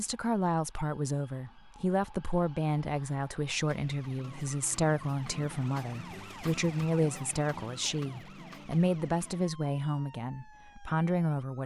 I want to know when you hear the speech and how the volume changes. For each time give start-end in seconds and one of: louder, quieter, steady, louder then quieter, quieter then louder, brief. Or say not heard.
0.0-11.6 steady.